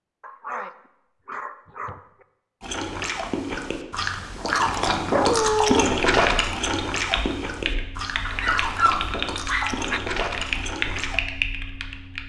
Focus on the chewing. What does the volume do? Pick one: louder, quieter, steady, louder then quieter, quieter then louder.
louder then quieter.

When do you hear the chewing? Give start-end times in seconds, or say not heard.
2.6-11.2.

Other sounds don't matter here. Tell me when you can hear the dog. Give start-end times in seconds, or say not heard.
0.2-2.2, 5.1-5.8, 8.2-10.0.